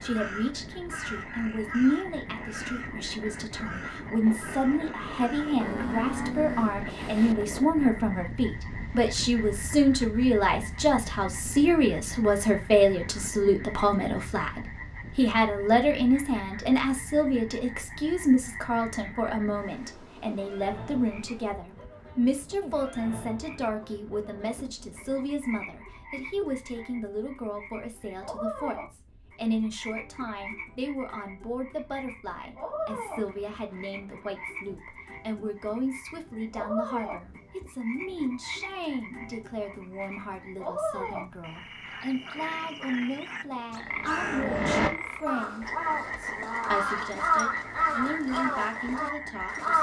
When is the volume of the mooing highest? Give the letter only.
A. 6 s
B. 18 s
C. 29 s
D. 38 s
A.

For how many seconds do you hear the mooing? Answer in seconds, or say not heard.
2 s.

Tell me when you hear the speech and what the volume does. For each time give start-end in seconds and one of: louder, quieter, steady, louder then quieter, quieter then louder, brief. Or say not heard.
0.0-49.7 quieter.